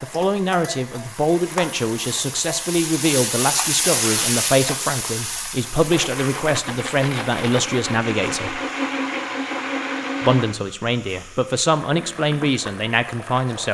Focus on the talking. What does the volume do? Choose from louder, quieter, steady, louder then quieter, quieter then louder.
steady.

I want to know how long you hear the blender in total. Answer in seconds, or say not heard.
5 s.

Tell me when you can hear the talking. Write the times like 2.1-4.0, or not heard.
0.0-8.6, 10.2-13.6.